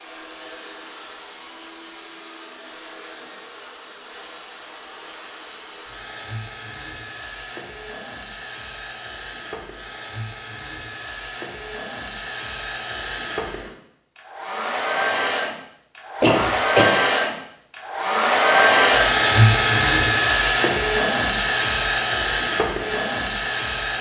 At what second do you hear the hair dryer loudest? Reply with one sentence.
The volume of the hair dryer peaks at 19 seconds.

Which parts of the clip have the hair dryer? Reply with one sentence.
The hair dryer can be heard from 0.0 to 23.9 s.